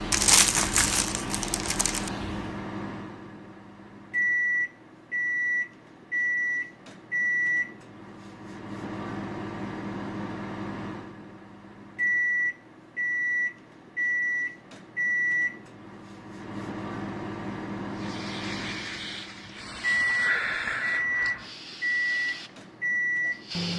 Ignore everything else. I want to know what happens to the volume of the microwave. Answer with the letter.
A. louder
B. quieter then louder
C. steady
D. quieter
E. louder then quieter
C.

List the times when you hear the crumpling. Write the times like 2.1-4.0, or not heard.
0.1-2.1.